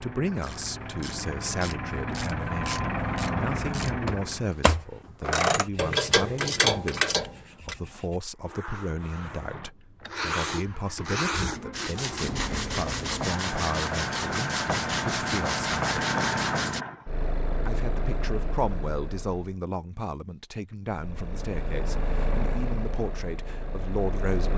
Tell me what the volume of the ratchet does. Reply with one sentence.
The loudness of the ratchet goes up.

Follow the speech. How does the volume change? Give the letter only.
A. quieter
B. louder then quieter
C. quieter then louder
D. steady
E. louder
D.